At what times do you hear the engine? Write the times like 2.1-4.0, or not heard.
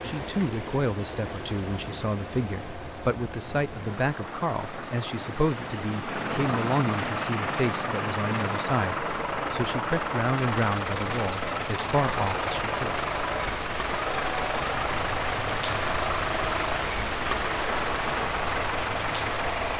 0.0-19.7.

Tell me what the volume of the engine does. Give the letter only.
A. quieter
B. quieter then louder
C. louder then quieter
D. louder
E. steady
D.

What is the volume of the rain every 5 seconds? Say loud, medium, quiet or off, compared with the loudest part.
medium, medium, loud, loud.